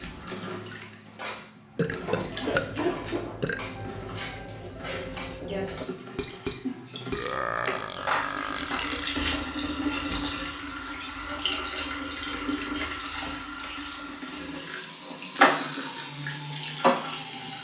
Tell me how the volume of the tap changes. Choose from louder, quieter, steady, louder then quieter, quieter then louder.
louder.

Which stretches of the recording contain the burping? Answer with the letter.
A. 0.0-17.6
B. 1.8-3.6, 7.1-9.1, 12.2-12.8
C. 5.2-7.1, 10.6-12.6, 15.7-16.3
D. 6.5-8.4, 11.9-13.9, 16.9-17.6
B.